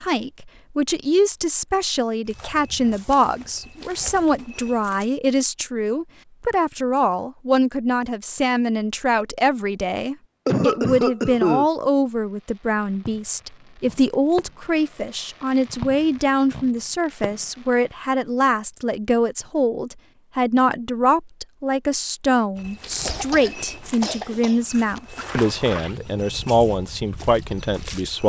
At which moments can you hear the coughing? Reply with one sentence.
The coughing can be heard from 10.4 to 11.7 s and from 23.1 to 25.0 s.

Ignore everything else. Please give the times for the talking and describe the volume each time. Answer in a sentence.
You can hear the talking from 0.0 to 28.2 s, at a steady volume.